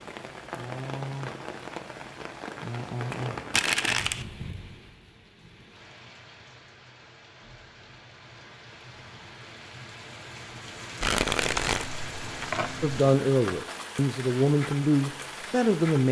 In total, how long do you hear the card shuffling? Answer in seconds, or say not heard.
3 s.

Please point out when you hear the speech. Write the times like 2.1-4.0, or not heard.
12.8-16.0.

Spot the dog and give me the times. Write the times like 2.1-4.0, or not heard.
not heard.